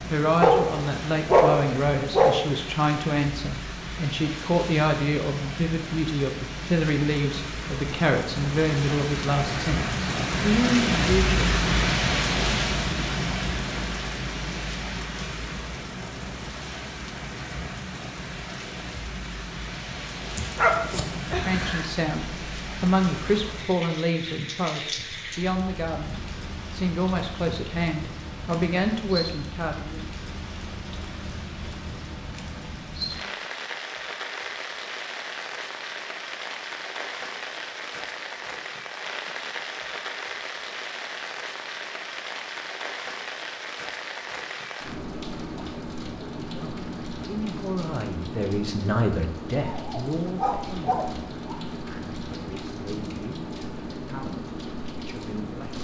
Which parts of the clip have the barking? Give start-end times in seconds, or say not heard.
0.4-2.4, 20.4-21.9, 49.7-51.5.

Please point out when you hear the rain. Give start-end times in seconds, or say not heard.
0.0-55.7.